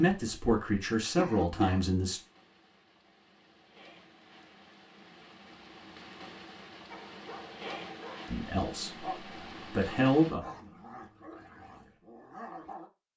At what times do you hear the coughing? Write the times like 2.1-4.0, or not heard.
1.1-1.9.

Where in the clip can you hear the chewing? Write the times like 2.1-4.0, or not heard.
not heard.